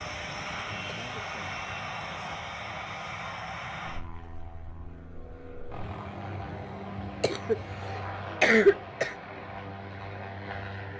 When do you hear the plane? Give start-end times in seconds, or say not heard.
0.0-10.9.